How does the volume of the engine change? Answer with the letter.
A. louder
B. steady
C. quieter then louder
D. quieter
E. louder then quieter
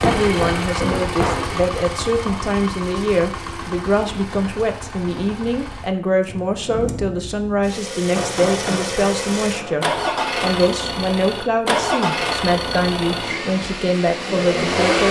C.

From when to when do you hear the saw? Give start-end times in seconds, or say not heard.
not heard.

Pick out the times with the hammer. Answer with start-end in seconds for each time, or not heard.
0.0-1.5, 8.2-9.9.